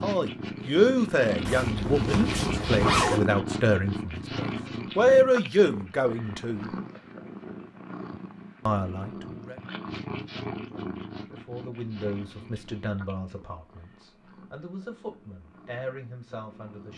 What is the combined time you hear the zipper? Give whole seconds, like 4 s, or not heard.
2 s.